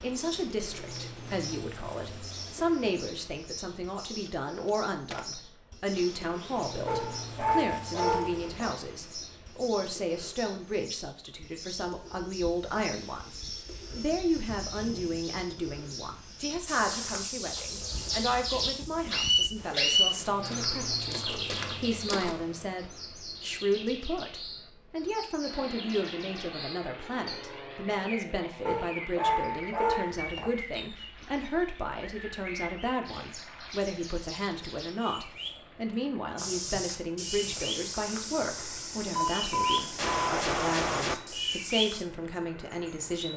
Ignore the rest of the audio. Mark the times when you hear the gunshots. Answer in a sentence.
You can hear the gunshots from 4.2 to 5.4 s and from 39.1 to 41.1 s.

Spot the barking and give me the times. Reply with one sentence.
The barking can be heard from 6.8 to 8.8 s and from 28.6 to 30.5 s.